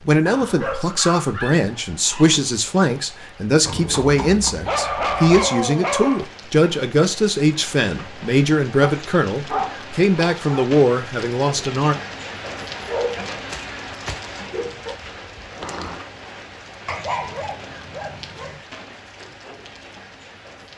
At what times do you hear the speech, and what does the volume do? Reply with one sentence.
You can hear the speech from 0.1 to 11.9 s, at a steady volume.